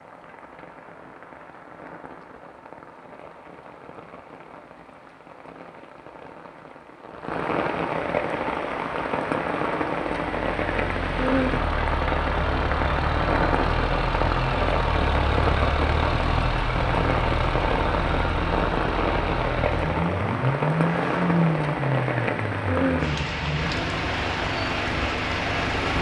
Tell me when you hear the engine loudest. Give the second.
21 s.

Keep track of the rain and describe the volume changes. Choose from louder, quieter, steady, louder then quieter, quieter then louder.
louder.